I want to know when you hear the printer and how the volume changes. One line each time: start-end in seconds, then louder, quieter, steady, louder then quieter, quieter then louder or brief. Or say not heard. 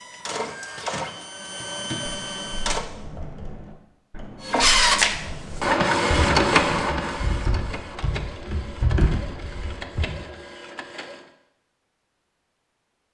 0.0-2.9 brief
4.4-11.3 quieter.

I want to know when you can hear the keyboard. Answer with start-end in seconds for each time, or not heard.
1.6-10.2.